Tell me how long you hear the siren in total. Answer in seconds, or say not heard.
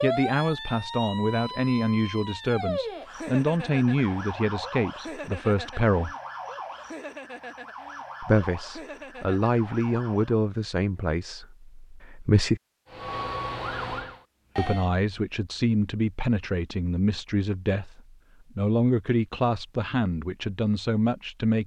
12 s.